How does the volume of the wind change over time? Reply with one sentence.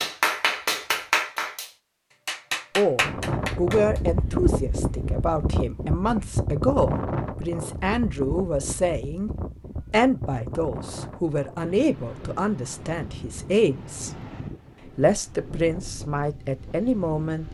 The volume of the wind goes down.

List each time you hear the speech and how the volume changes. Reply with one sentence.
The speech can be heard from 2.8 to 14.1 s, at a steady volume; and briefly from 14.9 to 17.4 s.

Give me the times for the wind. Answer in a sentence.
You can hear the wind from 3.0 to 17.4 s.